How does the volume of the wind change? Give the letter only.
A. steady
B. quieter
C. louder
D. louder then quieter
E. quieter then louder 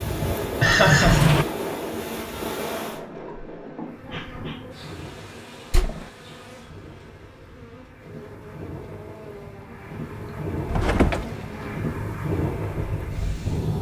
E.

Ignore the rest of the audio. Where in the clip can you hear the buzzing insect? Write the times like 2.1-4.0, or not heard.
0.0-13.7.